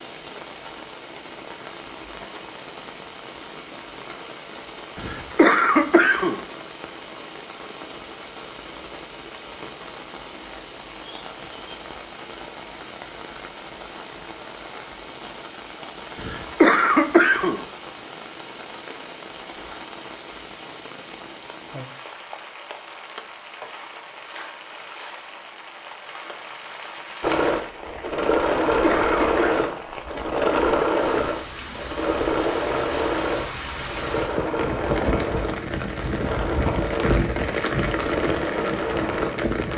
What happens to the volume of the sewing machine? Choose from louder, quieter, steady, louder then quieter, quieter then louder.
quieter.